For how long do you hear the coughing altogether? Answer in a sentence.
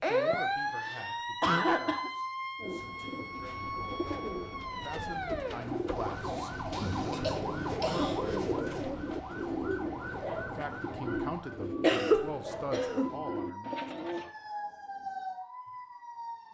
The coughing can be heard for 5 seconds in total.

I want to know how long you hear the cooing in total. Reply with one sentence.
You can hear the cooing for 12 seconds altogether.